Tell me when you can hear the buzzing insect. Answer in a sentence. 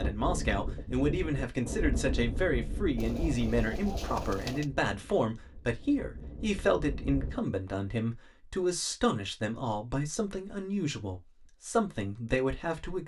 You can't hear the buzzing insect here.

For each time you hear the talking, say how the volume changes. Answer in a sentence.
The talking can be heard from 0.0 to 13.0 s, at a steady volume.